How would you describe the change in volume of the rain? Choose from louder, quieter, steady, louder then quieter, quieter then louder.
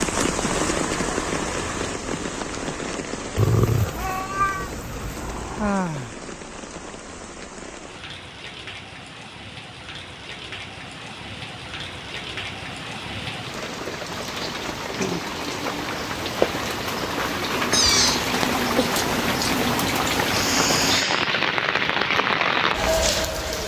quieter then louder.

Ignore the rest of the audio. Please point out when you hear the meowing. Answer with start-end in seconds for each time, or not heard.
3.4-5.8, 17.7-18.9.